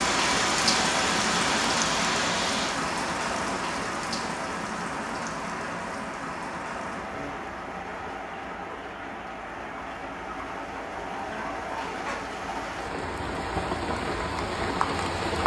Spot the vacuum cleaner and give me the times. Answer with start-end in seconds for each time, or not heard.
0.0-2.8.